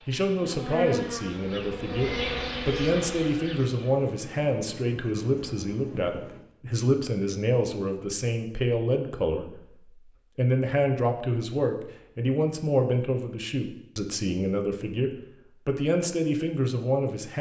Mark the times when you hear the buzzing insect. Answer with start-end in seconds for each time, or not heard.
0.0-6.4.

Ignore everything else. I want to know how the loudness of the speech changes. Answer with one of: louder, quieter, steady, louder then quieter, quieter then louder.
steady.